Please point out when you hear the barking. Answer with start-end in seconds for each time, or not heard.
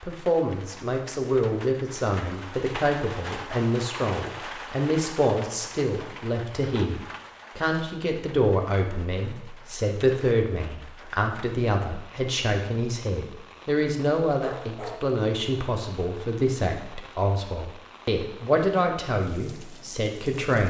14.4-15.1.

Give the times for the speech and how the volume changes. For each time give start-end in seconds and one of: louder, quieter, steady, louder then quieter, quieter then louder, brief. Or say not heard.
0.0-20.6 steady.